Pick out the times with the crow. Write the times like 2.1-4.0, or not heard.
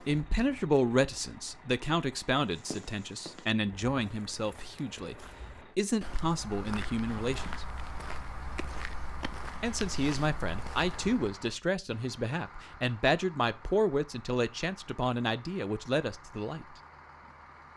not heard.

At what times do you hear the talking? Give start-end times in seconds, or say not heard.
0.1-7.7, 9.6-16.8.